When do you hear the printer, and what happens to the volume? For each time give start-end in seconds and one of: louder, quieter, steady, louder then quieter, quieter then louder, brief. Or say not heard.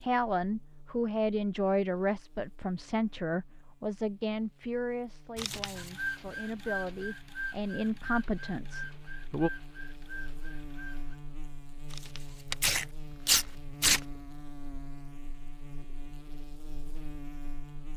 5.8-11.2 quieter.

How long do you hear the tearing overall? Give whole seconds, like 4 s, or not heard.
3 s.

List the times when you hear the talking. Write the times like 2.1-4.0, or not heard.
0.0-9.5.